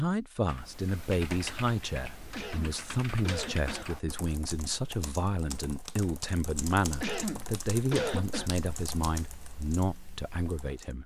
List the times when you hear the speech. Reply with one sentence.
The speech can be heard from 0.0 to 11.0 s.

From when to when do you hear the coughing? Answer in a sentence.
You can hear the coughing from 2.3 to 3.9 s and from 7.0 to 8.5 s.